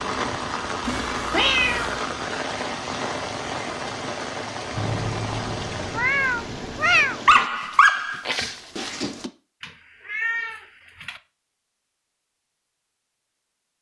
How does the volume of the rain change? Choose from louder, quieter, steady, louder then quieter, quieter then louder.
quieter.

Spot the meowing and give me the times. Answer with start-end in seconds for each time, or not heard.
0.8-2.0, 4.8-7.2, 9.6-11.2.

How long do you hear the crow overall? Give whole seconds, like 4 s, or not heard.
not heard.